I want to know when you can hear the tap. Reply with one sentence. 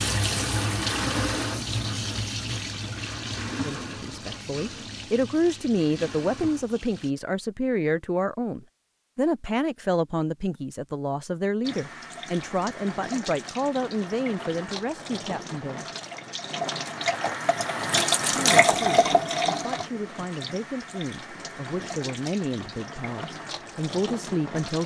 You can hear the tap from 0.0 to 7.2 s and from 11.6 to 24.8 s.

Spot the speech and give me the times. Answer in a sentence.
The speech can be heard from 3.6 to 15.8 s and from 18.3 to 24.8 s.